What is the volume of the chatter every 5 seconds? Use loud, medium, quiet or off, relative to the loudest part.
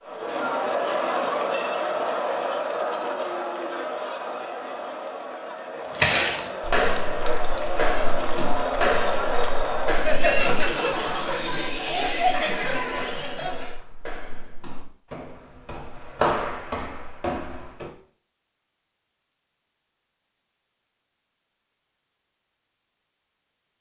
loud, loud, loud, off, off.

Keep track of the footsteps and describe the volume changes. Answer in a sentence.
The volume of the footsteps goes down, then up.